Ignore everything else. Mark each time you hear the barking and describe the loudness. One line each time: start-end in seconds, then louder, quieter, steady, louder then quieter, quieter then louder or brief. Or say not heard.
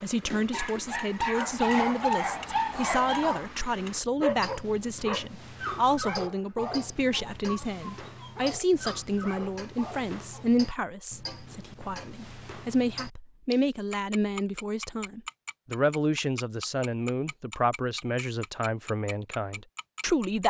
0.5-10.6 quieter.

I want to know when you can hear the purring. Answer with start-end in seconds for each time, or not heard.
not heard.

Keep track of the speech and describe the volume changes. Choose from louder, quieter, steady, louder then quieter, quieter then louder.
steady.